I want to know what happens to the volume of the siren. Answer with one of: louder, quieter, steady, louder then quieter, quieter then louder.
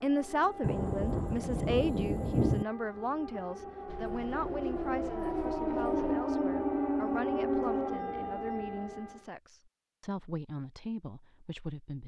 louder.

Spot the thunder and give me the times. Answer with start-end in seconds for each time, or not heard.
0.6-2.6.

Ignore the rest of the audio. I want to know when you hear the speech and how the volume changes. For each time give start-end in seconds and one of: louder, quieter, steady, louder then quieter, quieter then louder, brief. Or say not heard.
0.0-12.0 quieter.